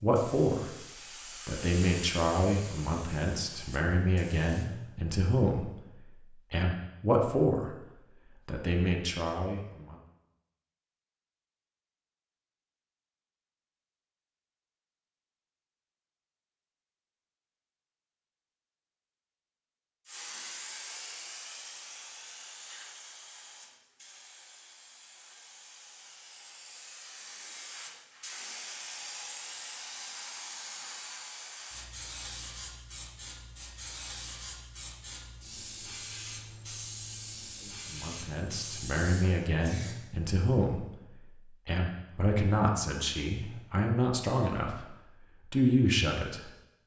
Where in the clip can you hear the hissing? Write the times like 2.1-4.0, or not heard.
0.0-4.7, 20.1-40.0.